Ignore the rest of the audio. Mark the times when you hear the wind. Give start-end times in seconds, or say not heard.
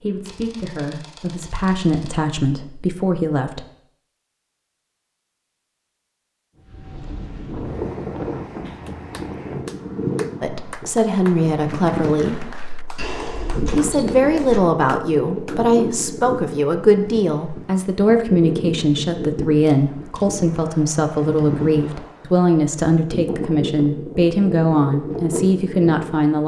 6.6-26.3.